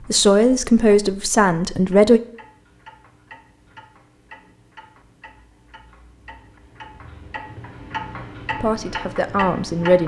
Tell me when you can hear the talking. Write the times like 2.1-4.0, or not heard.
0.1-2.2, 8.6-10.0.